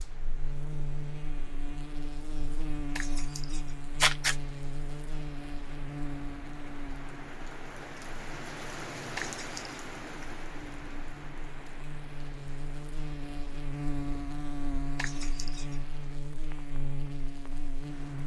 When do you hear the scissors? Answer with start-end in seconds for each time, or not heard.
3.0-4.3, 9.2-9.8, 14.9-15.8.